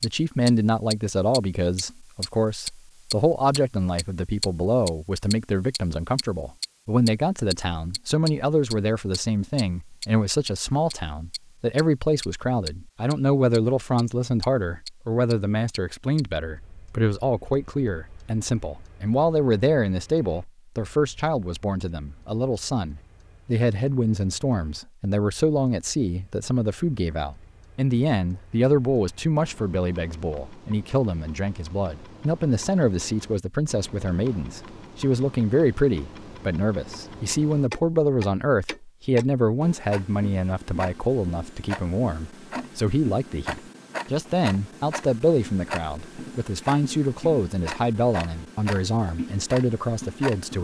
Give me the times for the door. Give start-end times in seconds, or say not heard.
not heard.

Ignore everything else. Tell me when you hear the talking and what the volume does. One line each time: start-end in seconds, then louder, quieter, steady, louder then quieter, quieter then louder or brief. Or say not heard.
0.0-50.6 steady.